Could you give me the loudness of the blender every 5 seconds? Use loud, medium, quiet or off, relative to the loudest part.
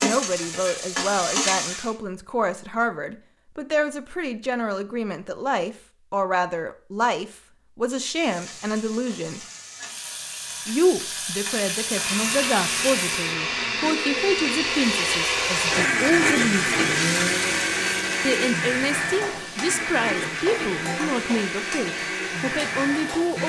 off, off, loud, loud, medium.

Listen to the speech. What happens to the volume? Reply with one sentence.
The loudness of the speech stays about the same.